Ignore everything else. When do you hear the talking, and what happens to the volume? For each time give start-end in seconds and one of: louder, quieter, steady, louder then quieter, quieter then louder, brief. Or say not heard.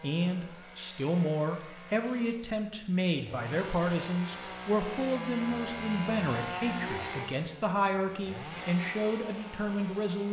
0.0-10.2 steady.